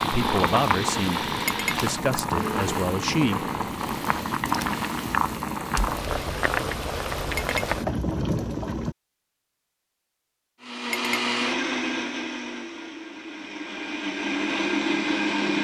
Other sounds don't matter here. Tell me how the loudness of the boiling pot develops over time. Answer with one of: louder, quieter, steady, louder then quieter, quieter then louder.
steady.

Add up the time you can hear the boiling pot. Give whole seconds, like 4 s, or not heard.
9 s.